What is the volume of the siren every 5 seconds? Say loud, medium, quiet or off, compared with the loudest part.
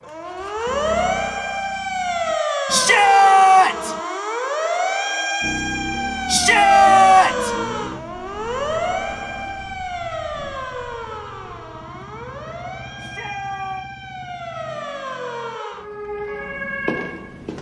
loud, loud, medium, medium.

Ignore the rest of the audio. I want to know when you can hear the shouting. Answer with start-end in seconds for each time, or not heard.
2.7-4.0, 6.2-7.5, 12.9-13.8.